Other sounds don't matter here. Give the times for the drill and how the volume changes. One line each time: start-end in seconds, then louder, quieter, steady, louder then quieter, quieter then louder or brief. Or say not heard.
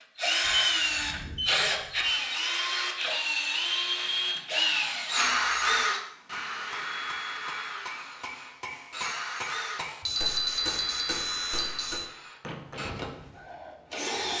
0.1-14.3 quieter.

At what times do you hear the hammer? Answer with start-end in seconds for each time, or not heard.
6.1-12.9.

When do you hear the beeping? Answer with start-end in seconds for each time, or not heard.
0.4-2.2, 5.2-5.8, 10.0-12.0.